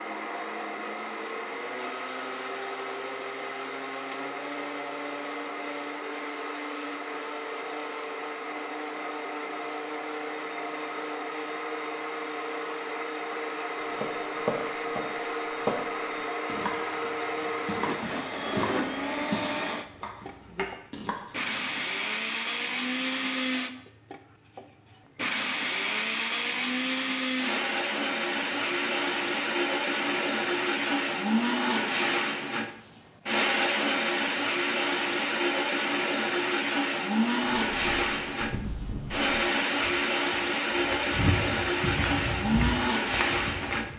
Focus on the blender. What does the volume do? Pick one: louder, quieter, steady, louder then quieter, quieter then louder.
louder.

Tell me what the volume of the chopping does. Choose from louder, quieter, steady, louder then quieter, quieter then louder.
quieter.